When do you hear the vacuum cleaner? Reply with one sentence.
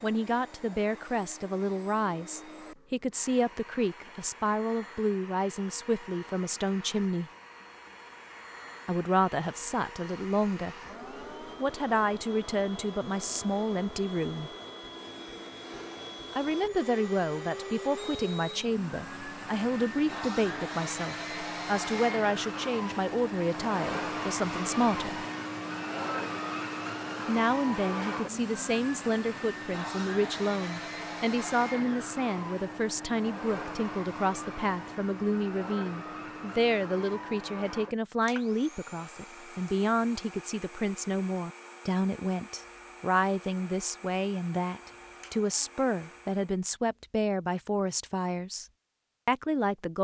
You can hear the vacuum cleaner from 0.0 to 46.6 s.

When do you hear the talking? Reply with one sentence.
You can hear the talking from 0.0 to 7.3 s, from 8.8 to 10.8 s, from 11.4 to 14.5 s, from 16.3 to 25.2 s, from 27.2 to 48.6 s and from 49.2 to 49.9 s.